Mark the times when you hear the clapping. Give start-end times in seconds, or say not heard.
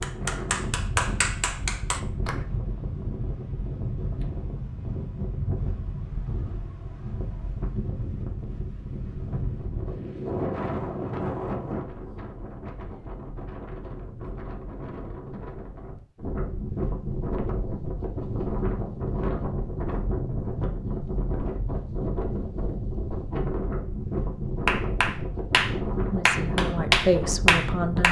0.0-2.4, 24.6-28.0.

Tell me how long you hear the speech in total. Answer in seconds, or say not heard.
2 s.